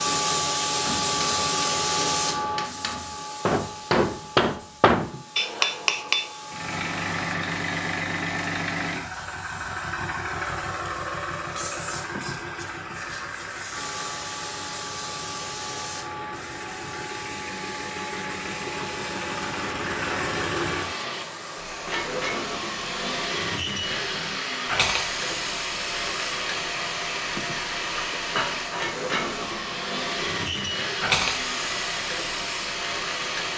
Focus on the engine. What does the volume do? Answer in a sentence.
The volume of the engine goes down, then up.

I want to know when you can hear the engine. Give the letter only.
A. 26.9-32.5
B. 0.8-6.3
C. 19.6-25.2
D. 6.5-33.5
D.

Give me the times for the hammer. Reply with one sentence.
You can hear the hammer from 0.8 to 6.3 s.